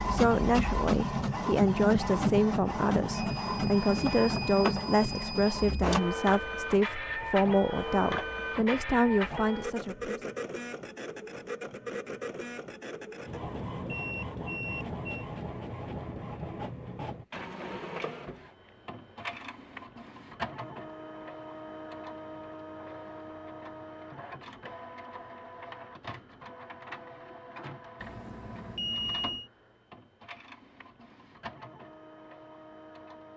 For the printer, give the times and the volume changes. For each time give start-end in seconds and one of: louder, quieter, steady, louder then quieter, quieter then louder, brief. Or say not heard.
0.0-33.3 quieter.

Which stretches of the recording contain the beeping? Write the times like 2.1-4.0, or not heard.
3.1-5.8, 13.8-15.2, 28.0-29.5.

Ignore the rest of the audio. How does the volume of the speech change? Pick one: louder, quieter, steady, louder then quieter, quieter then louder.
steady.